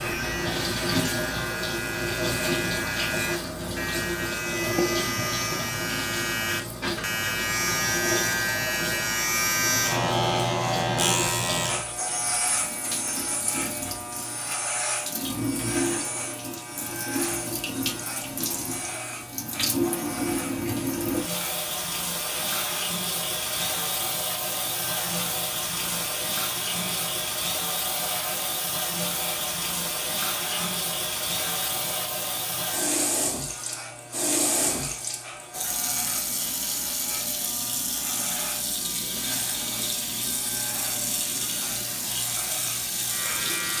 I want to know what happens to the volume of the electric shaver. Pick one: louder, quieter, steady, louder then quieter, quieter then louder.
quieter.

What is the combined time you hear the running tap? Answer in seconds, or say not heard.
44 s.